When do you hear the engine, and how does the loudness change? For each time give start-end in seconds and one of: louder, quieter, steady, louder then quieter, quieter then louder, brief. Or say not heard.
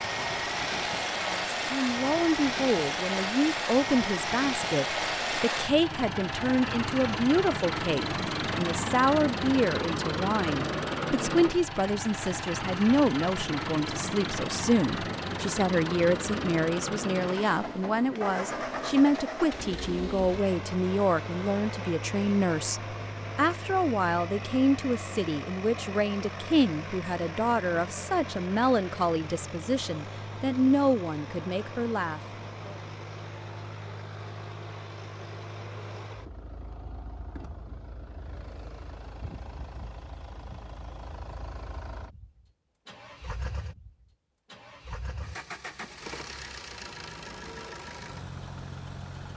0.0-49.3 quieter.